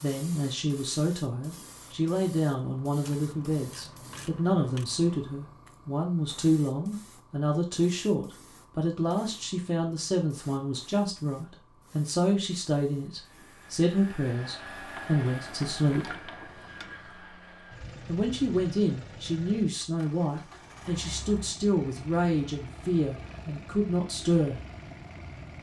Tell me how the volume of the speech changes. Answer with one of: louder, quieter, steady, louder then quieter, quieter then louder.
steady.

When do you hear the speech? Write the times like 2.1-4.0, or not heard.
0.0-16.1, 18.1-24.6.